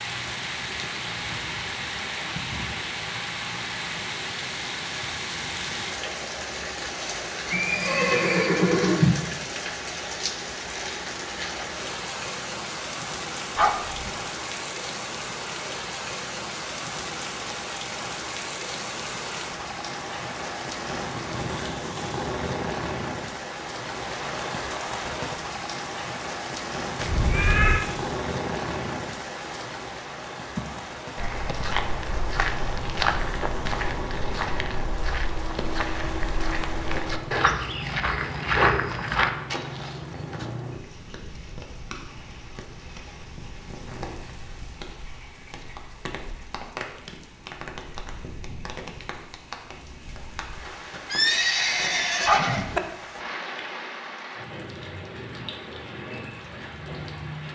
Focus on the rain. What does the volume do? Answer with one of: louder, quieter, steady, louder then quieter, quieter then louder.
quieter.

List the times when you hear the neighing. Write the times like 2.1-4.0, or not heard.
7.5-9.2, 26.9-27.9, 51.1-52.8.